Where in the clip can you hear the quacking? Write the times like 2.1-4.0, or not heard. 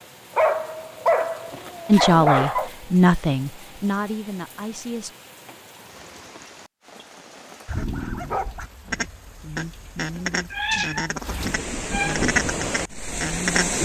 7.7-13.8.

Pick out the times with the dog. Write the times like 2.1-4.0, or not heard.
0.3-2.7, 7.8-8.6.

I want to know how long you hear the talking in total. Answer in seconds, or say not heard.
3 s.